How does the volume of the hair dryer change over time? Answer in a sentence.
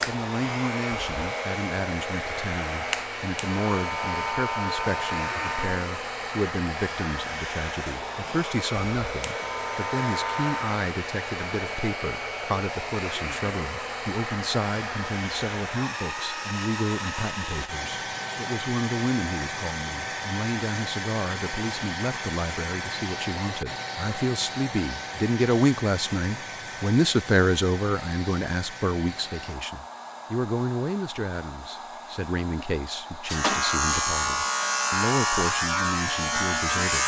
The volume of the hair dryer goes down.